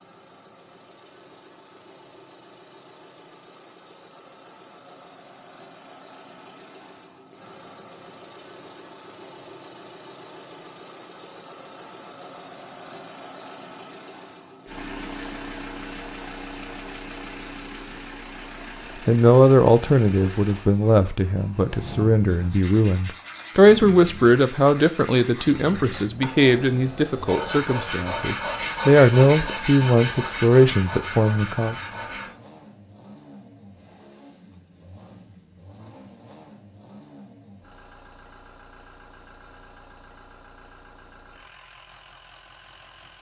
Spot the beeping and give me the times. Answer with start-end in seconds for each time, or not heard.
not heard.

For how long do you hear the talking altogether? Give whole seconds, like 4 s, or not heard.
13 s.